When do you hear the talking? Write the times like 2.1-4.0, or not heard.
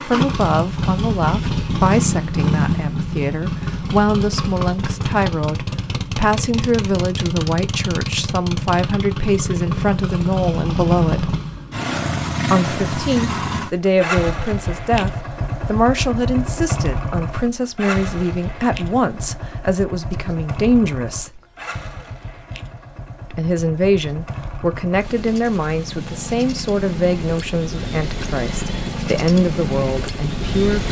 0.1-11.3, 12.5-21.3, 23.3-30.8.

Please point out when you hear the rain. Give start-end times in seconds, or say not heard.
not heard.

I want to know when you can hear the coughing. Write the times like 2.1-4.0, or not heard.
not heard.